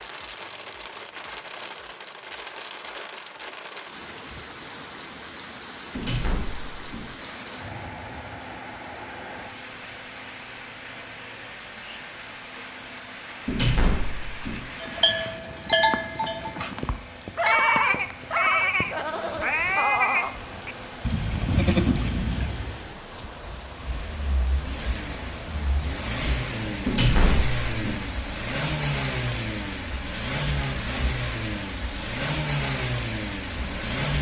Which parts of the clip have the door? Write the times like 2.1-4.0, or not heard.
6.0-7.1, 13.4-14.7, 26.9-28.1.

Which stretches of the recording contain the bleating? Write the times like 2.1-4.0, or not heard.
14.8-22.9.